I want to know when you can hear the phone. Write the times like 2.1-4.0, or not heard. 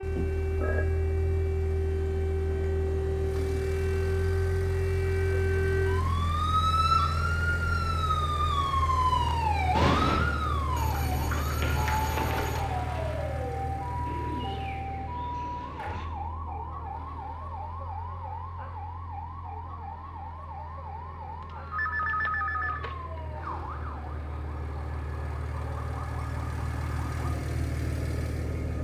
0.1-0.8, 10.8-12.7, 21.4-23.2.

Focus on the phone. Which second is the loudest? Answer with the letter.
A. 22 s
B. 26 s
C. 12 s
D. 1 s
A.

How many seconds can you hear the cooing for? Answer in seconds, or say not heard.
2 s.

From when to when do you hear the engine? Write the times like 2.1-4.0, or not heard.
0.0-28.7.